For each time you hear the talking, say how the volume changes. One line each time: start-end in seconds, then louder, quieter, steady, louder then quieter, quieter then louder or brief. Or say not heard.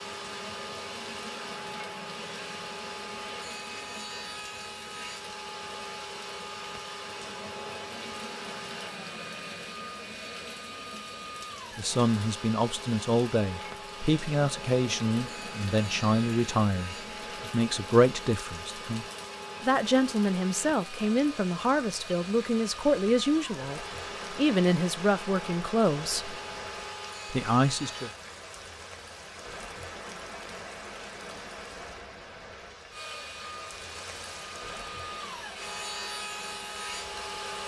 11.8-26.4 steady
27.3-28.1 brief.